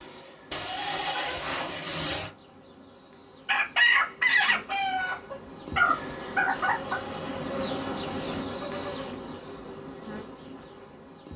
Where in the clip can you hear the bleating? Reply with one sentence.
The bleating can be heard from 0.5 to 2.4 s and from 6.7 to 9.2 s.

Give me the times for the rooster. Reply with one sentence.
The rooster can be heard from 3.5 to 7.0 s.